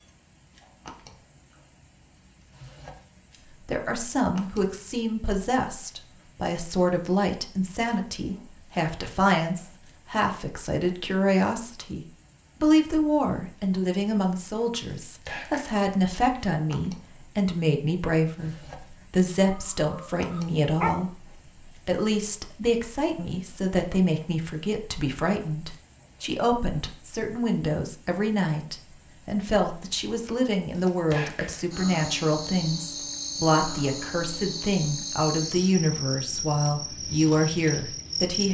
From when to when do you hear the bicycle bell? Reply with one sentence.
The bicycle bell can't be heard in this clip.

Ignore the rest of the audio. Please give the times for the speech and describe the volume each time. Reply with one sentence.
You can hear the speech from 3.6 to 38.5 s, at a steady volume.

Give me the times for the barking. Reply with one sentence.
The barking can be heard from 19.4 to 20.9 s.